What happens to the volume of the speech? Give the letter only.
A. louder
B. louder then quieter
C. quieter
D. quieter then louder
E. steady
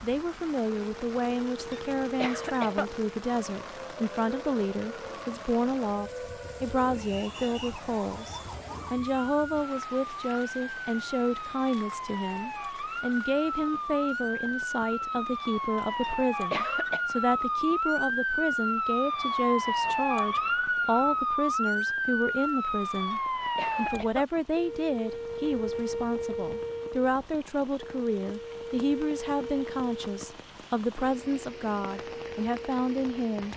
E.